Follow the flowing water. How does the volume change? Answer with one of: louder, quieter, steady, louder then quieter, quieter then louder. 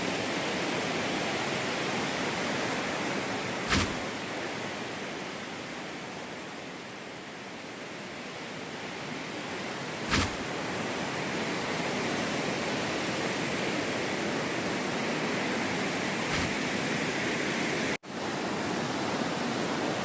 quieter then louder.